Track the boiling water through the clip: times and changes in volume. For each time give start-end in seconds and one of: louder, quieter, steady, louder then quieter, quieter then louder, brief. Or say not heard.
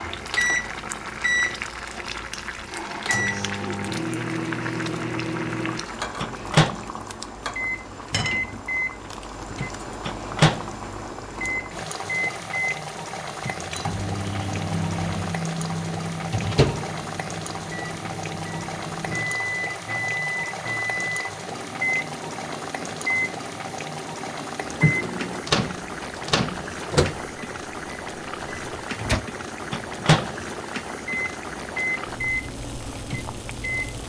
0.0-34.0 steady.